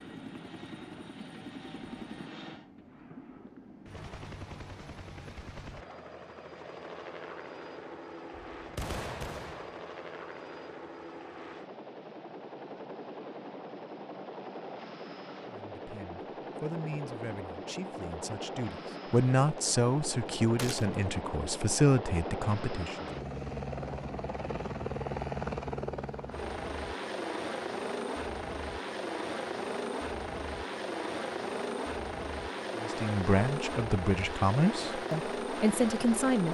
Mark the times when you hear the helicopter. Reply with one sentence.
The helicopter can be heard from 0.0 to 36.4 s.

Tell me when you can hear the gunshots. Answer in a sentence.
The gunshots can be heard from 8.6 to 9.8 s and from 20.6 to 21.1 s.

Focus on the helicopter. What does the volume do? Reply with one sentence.
The loudness of the helicopter goes up.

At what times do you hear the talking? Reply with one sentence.
The talking can be heard from 15.4 to 23.1 s and from 32.8 to 36.4 s.